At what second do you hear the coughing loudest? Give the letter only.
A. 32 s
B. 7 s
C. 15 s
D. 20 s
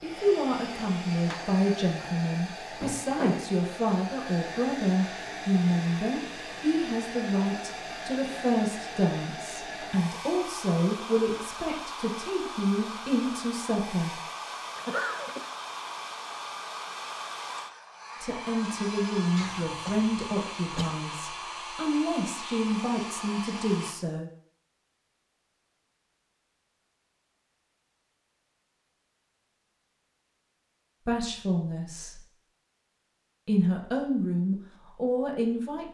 C.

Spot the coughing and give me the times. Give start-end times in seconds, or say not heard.
14.8-15.5, 19.4-21.1.